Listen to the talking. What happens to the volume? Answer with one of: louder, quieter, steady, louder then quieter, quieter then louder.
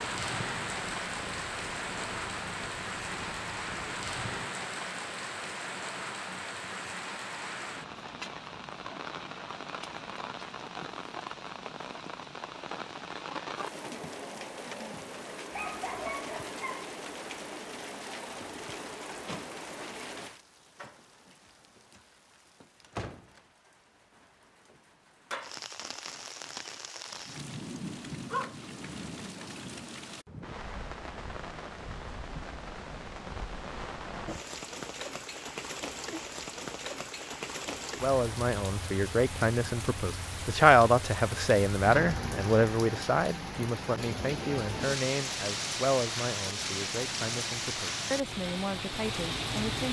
louder then quieter.